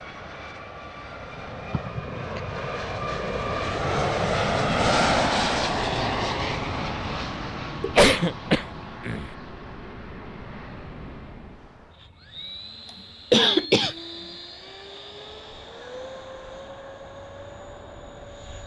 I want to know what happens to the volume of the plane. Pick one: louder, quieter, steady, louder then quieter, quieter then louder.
louder then quieter.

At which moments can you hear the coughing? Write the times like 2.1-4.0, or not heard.
1.7-2.4, 7.8-9.3, 13.3-13.9.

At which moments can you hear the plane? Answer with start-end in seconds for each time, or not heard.
0.0-18.6.